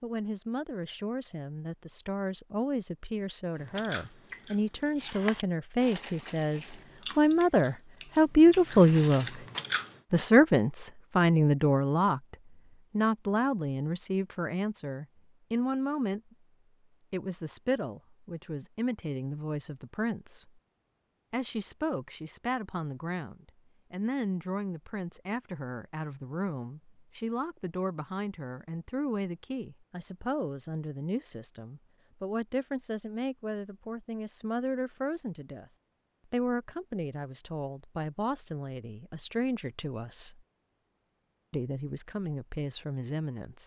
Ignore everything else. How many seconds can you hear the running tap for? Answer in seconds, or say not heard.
not heard.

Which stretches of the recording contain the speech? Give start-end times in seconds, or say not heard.
0.0-9.2, 10.1-16.4, 17.1-20.5, 21.3-35.6, 36.3-40.4, 41.5-43.6.